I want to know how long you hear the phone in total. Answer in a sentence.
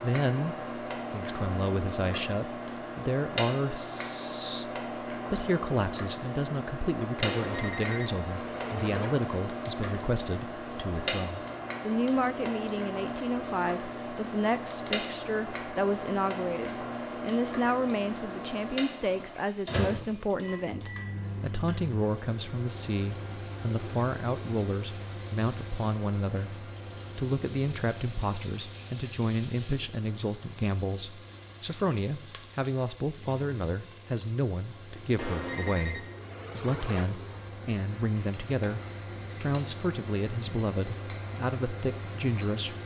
You can hear the phone for 4 seconds altogether.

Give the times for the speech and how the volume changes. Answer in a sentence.
The speech can be heard from 0.0 to 42.8 s, at a steady volume.